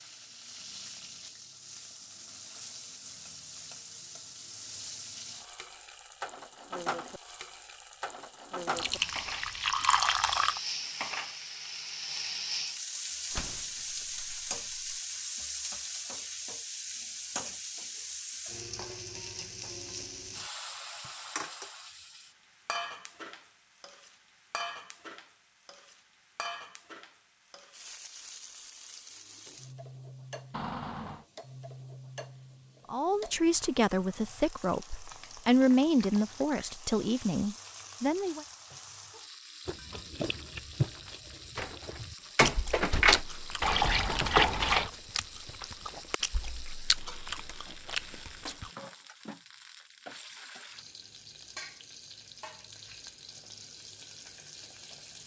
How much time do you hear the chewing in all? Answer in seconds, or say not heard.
9 s.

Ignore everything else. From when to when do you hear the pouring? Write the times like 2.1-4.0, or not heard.
8.8-10.6, 43.6-44.9.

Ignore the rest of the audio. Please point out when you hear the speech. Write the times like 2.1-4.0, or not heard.
32.9-38.5.